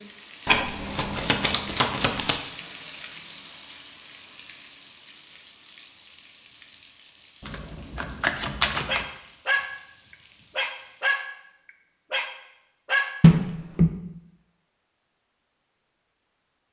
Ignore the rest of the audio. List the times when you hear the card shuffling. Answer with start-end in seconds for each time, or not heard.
0.5-2.4, 7.4-9.1, 13.2-13.9.